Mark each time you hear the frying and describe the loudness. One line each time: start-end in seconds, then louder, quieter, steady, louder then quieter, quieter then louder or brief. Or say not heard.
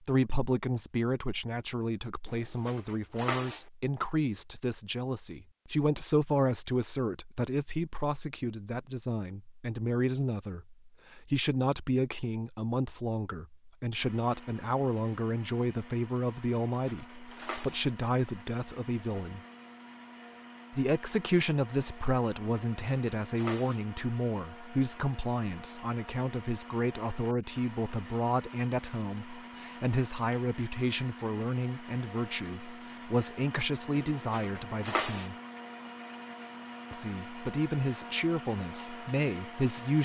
not heard.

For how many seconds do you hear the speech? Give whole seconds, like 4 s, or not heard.
37 s.